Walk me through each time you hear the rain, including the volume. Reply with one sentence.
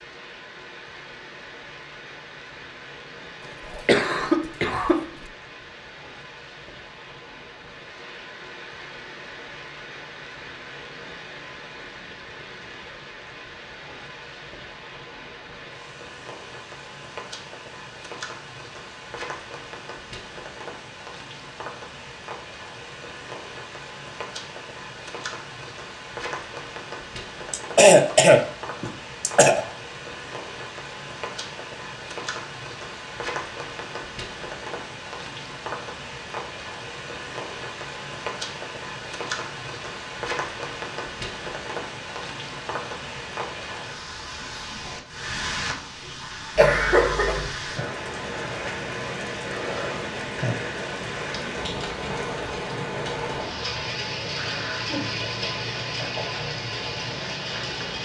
You can hear the rain from 0.0 to 58.0 s, getting louder.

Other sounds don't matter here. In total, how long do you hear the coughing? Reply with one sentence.
You can hear the coughing for 4 seconds altogether.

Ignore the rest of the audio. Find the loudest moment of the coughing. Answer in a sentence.
The volume of the coughing peaks at 28 seconds.